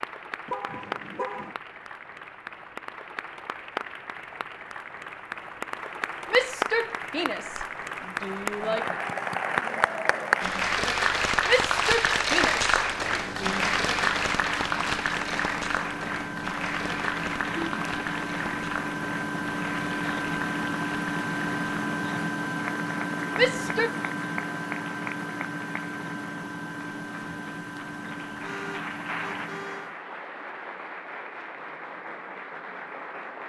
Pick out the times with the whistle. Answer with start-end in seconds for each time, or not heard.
not heard.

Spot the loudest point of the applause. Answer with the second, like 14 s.
12 s.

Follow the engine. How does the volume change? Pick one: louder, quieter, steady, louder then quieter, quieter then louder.
louder then quieter.